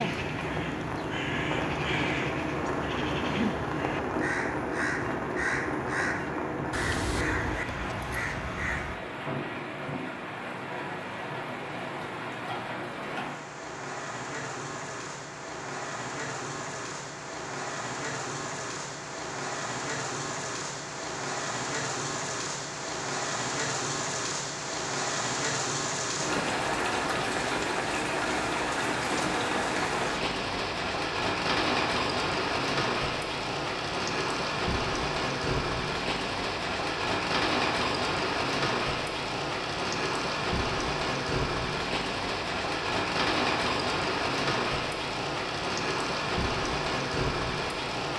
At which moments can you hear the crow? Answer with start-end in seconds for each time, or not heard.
0.0-9.0.